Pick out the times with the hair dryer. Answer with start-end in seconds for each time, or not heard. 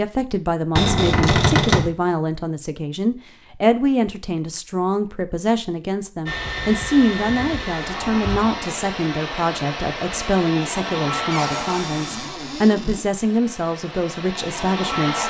6.2-15.2.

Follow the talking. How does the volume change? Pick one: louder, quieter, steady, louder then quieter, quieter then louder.
steady.